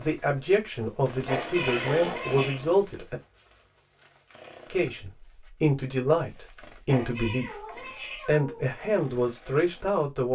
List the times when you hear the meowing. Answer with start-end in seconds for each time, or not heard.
1.2-2.6, 6.8-8.7.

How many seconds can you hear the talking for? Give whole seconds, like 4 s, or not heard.
8 s.